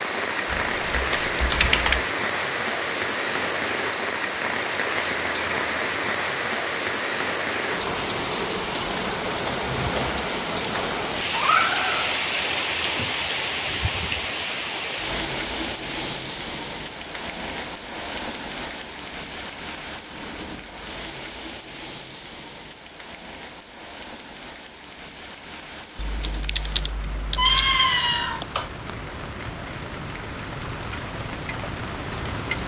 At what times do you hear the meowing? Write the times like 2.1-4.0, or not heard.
11.3-12.2, 27.4-28.7.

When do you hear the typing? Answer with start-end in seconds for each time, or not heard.
0.5-2.0, 25.9-27.6.